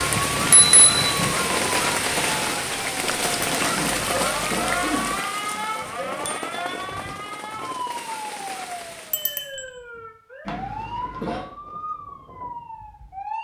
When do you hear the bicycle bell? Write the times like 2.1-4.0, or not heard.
0.3-1.3, 5.8-7.2, 9.1-9.7.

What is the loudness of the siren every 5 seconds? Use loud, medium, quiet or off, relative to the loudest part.
loud, loud, medium.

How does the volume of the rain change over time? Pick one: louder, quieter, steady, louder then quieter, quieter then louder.
quieter.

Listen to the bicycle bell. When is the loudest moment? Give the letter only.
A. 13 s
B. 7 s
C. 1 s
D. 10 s
C.